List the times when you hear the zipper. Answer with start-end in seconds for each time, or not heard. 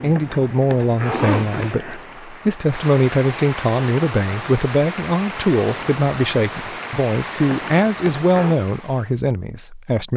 0.1-2.0, 7.5-8.6.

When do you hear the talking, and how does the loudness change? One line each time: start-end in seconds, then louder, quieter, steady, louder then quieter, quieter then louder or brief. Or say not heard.
0.0-10.1 steady.